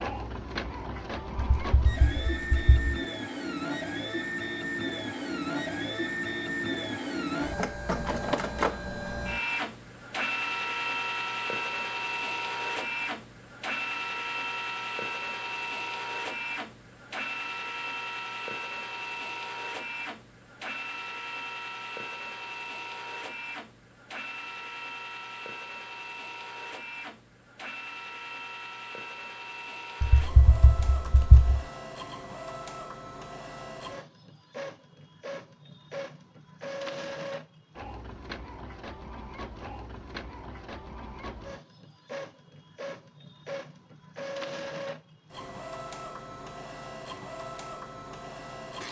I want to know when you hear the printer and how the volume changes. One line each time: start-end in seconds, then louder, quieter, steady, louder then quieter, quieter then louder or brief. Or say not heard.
0.0-48.8 quieter.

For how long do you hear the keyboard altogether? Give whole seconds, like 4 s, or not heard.
3 s.